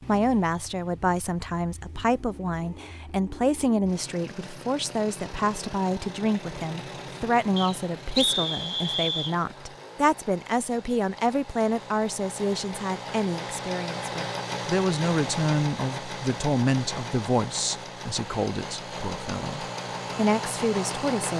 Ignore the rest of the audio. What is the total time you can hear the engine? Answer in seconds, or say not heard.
21 s.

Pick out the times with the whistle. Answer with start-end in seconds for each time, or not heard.
7.5-9.3.